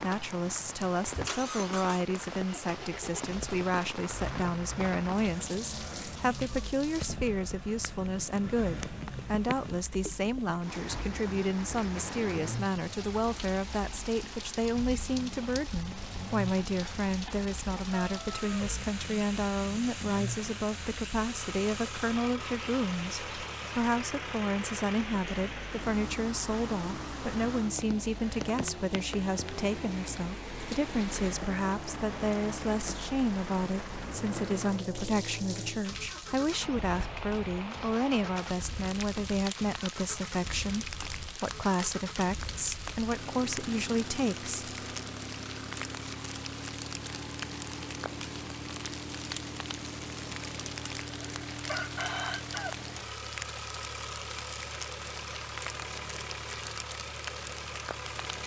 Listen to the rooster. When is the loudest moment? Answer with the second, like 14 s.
52 s.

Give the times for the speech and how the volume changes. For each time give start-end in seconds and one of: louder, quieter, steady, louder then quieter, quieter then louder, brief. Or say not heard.
0.0-44.7 steady.